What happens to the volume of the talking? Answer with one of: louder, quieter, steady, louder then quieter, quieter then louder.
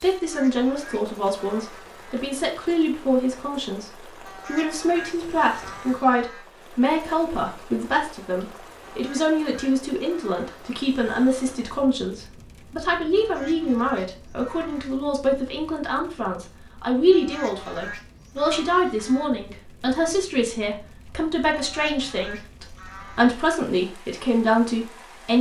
steady.